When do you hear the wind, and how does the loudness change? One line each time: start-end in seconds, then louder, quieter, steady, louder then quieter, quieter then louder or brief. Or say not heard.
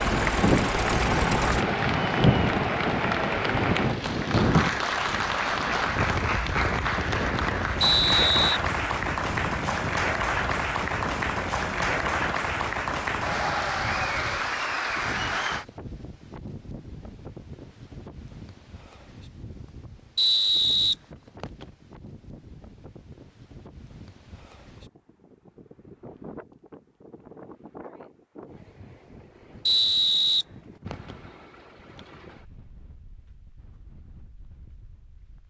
0.0-35.4 quieter.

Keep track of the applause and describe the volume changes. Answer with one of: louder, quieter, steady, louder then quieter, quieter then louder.
steady.